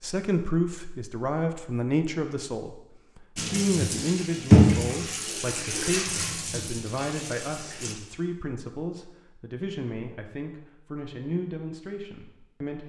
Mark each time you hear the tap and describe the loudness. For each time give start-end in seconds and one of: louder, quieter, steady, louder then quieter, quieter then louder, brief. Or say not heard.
3.4-8.0 louder then quieter.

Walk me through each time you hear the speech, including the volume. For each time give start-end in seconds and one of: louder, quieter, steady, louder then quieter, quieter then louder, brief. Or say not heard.
0.0-12.8 quieter.